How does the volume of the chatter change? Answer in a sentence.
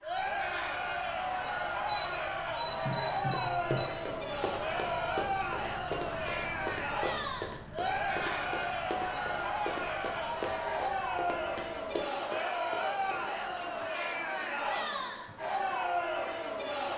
The loudness of the chatter stays about the same.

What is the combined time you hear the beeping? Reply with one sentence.
The beeping can be heard for 2 seconds in total.